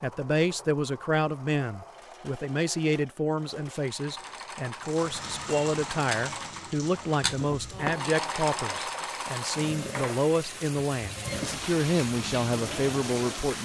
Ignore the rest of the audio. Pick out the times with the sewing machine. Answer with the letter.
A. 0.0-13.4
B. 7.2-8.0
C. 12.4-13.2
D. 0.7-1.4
A.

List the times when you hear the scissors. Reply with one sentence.
You can hear the scissors from 7.2 to 8.0 s.